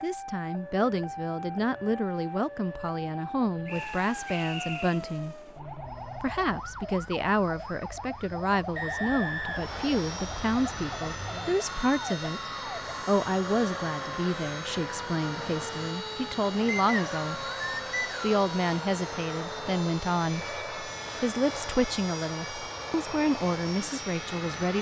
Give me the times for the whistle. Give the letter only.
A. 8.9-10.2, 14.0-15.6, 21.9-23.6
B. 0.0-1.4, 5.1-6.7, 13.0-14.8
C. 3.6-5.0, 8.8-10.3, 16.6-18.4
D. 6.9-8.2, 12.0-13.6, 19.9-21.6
C.